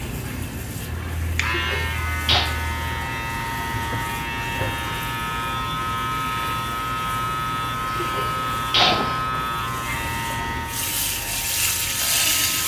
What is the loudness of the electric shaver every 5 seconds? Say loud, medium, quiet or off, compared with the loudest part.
loud, loud, medium.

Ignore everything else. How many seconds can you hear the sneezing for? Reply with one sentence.
You can hear the sneezing for 2 seconds altogether.